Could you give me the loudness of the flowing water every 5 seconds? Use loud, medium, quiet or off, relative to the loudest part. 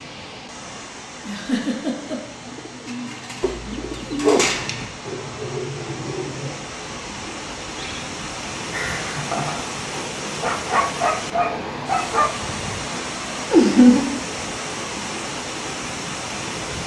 medium, loud, loud, loud.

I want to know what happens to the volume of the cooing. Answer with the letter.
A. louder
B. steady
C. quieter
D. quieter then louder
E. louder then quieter
E.